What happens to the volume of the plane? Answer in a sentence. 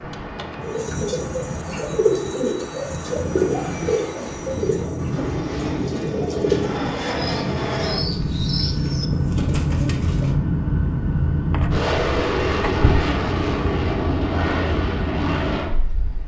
The loudness of the plane goes up.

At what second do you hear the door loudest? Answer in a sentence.
The volume of the door peaks at 13 seconds.